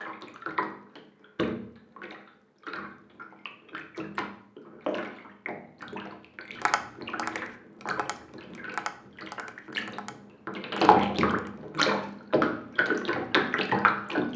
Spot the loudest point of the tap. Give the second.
11 s.